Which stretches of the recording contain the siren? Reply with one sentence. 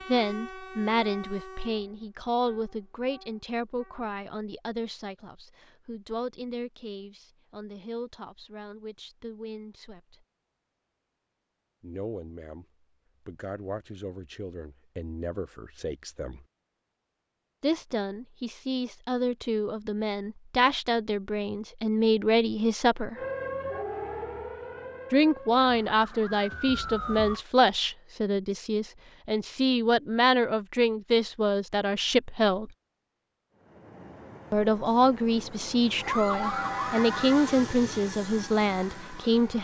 You can hear the siren from 23.1 to 27.4 s and from 36.0 to 39.5 s.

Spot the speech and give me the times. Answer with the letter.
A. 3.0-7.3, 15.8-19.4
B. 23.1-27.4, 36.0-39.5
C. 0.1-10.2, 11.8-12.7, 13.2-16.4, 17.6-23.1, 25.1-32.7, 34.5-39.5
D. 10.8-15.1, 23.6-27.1
C.